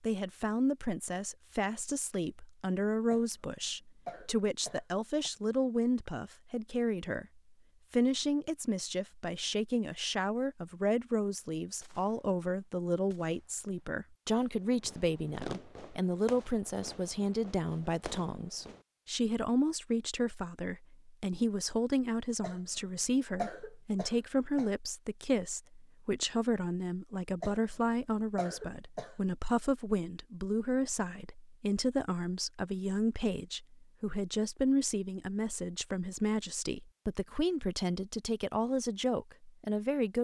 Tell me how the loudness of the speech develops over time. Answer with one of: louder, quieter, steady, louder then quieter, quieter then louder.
steady.